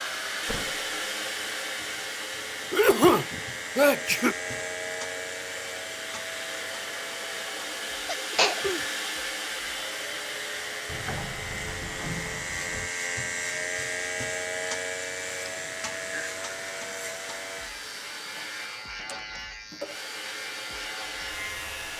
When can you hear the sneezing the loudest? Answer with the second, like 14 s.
3 s.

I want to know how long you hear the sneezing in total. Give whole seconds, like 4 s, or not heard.
3 s.